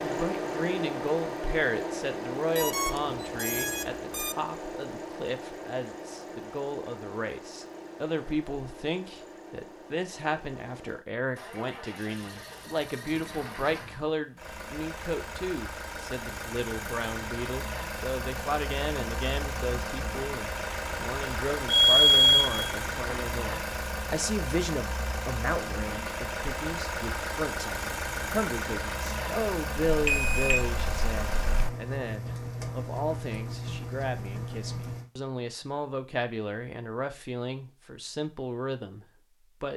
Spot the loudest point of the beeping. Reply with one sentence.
The loudest moment of the beeping is at 22 seconds.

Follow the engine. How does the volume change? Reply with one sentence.
The volume of the engine goes down, then up.